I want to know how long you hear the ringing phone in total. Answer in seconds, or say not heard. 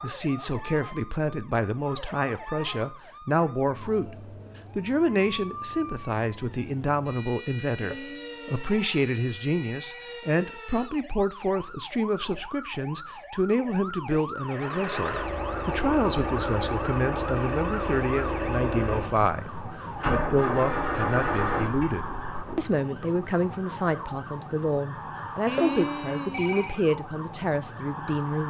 4 s.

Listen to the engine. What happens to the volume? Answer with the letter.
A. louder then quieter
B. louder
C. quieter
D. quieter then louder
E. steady
E.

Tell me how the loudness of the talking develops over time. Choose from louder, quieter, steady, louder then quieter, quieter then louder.
steady.